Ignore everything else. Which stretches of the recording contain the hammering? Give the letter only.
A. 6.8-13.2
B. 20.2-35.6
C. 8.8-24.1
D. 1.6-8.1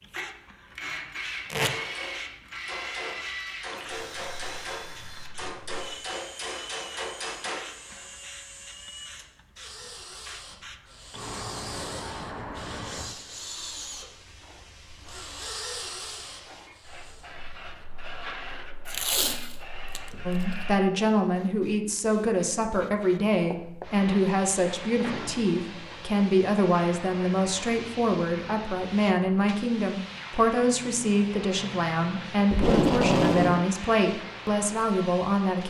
D.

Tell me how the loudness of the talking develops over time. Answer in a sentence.
The loudness of the talking stays about the same.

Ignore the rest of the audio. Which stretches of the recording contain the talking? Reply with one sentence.
The talking can be heard from 20.2 to 35.6 s.